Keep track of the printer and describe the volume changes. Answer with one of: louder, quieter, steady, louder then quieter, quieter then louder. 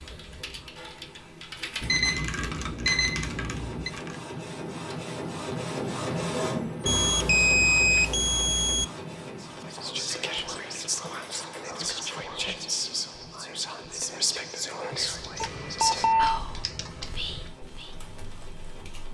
louder then quieter.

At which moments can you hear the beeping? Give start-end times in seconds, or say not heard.
1.8-3.9, 6.8-8.8, 15.4-16.4.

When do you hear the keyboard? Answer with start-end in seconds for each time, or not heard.
0.0-4.2, 15.1-19.1.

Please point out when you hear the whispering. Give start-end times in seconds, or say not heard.
9.4-17.9.